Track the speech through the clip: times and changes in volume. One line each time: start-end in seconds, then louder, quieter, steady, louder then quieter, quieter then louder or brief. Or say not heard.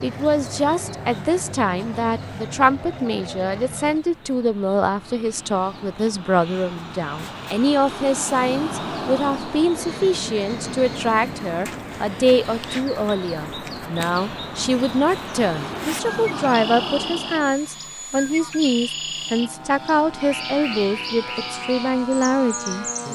0.0-22.9 steady.